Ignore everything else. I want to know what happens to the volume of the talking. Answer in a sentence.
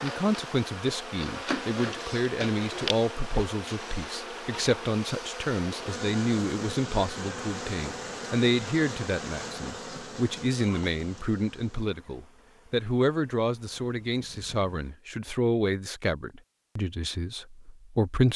The volume of the talking stays about the same.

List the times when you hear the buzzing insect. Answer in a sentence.
The buzzing insect can be heard from 0.0 to 15.0 s.